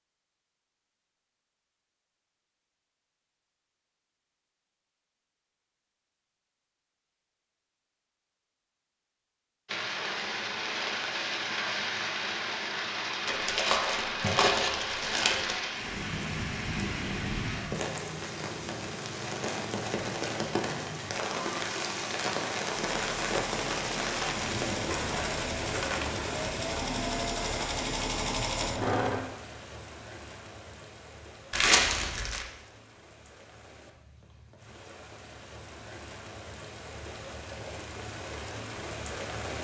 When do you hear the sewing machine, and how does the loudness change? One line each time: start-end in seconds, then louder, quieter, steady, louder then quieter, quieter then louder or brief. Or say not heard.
22.7-29.2 louder.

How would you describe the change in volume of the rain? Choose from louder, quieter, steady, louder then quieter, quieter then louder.
quieter.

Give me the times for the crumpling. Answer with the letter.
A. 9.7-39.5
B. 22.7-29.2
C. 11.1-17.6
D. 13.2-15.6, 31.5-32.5
D.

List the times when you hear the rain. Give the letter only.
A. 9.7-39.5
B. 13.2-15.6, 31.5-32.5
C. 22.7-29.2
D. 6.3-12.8
A.